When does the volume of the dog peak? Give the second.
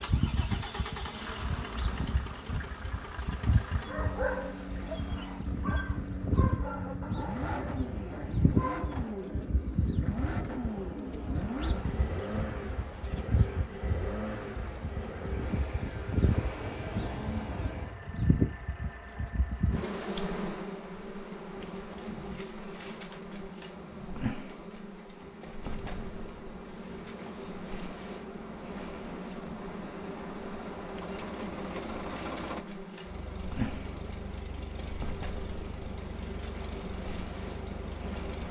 4 s.